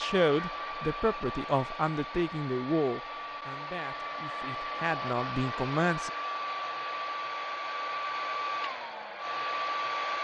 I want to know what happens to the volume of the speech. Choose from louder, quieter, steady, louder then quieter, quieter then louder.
quieter then louder.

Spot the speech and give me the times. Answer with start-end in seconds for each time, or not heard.
0.0-6.1.